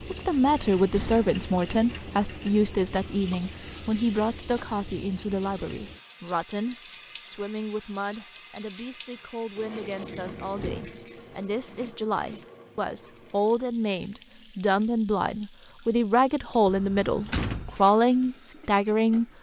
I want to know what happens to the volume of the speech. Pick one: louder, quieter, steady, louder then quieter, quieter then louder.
quieter then louder.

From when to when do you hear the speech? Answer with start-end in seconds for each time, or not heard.
0.1-19.2.